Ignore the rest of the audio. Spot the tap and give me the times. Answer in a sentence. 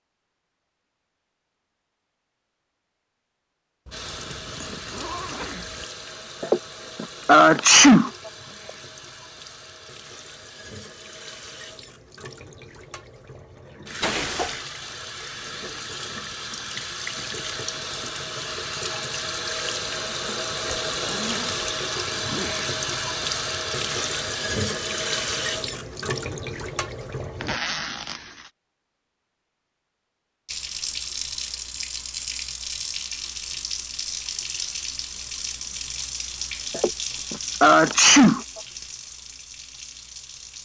The tap can be heard from 3.9 to 27.6 s and from 30.4 to 40.5 s.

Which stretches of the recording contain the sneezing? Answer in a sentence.
The sneezing can be heard from 6.4 to 8.3 s, from 14.0 to 14.6 s and from 36.7 to 38.6 s.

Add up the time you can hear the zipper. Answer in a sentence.
You can hear the zipper for 5 seconds altogether.